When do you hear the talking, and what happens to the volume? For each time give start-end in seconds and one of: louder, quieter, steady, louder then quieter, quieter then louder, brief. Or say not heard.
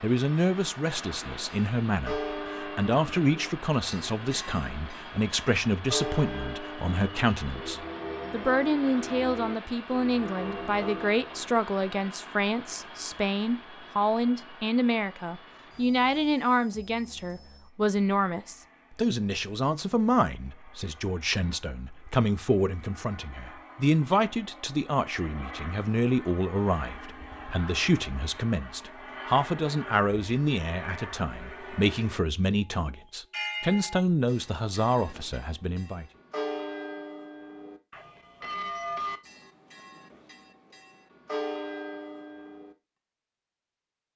0.0-36.0 steady.